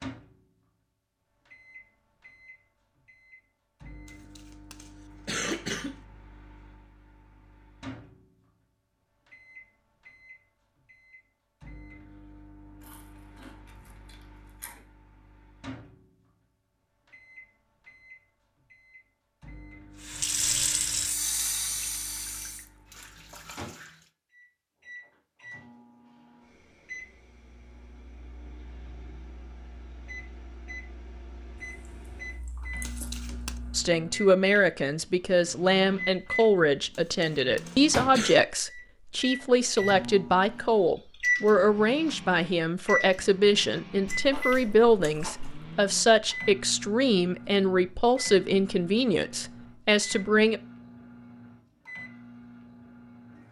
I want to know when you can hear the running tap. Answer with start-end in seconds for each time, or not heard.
20.0-24.1.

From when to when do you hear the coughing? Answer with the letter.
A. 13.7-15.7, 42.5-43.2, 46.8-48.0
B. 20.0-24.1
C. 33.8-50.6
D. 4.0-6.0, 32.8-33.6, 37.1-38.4
D.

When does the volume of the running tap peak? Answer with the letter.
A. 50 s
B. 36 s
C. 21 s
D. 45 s
C.